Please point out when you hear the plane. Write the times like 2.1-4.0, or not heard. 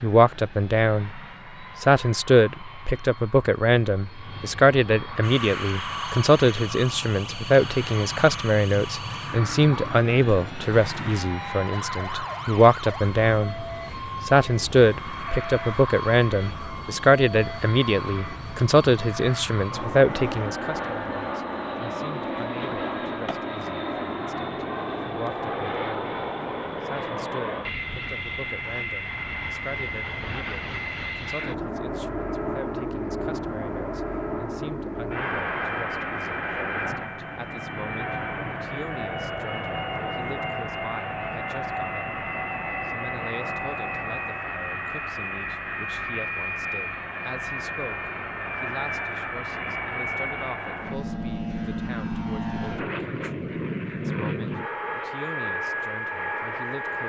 0.0-57.0.